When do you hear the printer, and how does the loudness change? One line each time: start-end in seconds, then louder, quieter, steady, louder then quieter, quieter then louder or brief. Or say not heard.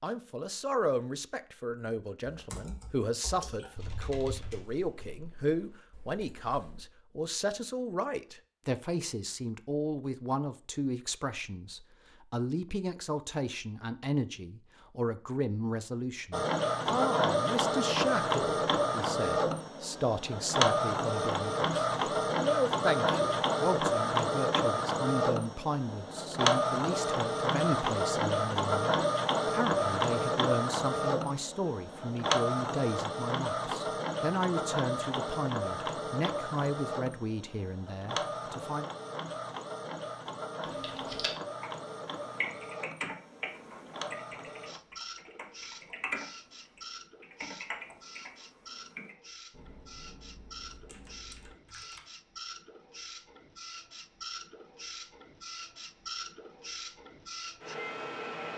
16.3-58.5 quieter.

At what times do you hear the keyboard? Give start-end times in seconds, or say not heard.
2.3-6.8, 40.6-52.0.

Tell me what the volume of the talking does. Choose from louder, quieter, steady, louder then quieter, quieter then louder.
steady.